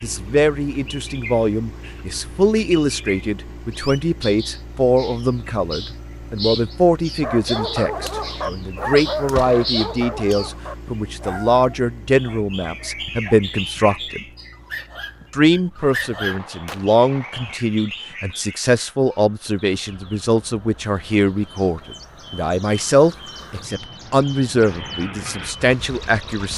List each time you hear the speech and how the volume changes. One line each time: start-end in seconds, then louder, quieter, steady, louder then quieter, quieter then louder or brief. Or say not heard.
0.0-14.2 steady
15.3-26.5 steady.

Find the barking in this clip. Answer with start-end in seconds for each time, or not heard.
7.2-16.4.